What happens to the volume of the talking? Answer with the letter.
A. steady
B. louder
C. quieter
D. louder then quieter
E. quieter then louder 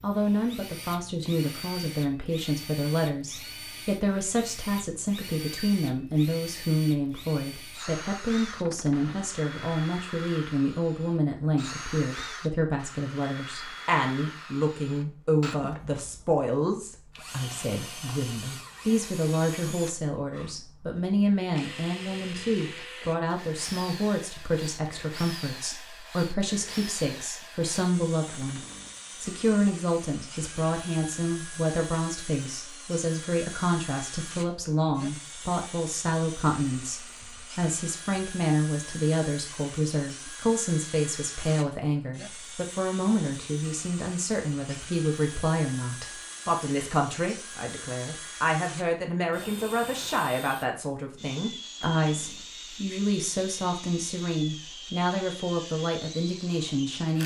A.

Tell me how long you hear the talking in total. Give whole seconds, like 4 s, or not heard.
57 s.